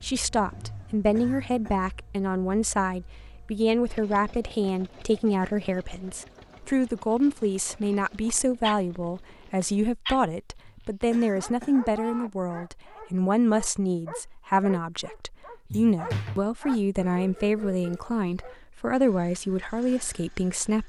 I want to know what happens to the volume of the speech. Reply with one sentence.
The loudness of the speech stays about the same.